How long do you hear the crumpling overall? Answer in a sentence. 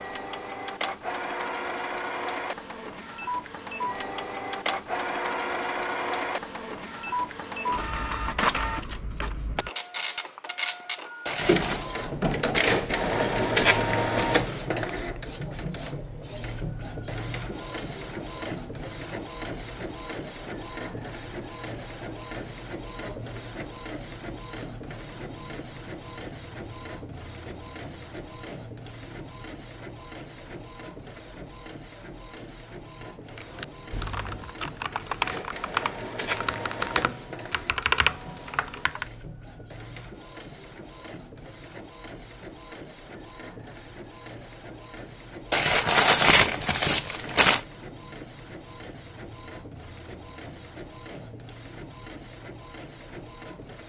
The crumpling can be heard for 3 seconds in total.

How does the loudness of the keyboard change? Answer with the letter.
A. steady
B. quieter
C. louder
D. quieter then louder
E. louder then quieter
C.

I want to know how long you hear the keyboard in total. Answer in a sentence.
You can hear the keyboard for 6 seconds altogether.